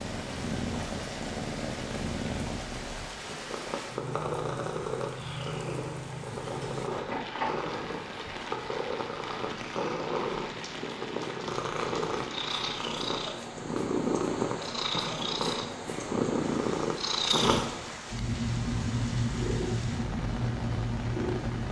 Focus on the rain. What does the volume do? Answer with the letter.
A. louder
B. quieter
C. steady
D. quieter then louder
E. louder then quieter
C.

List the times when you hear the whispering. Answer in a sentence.
You can't hear the whispering here.